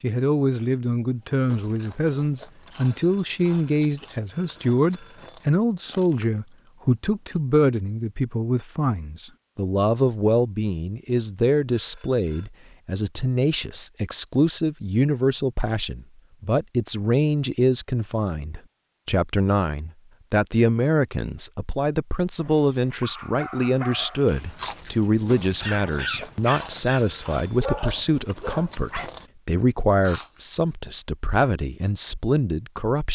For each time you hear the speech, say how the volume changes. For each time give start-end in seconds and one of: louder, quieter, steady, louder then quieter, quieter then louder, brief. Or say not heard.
0.0-33.1 steady.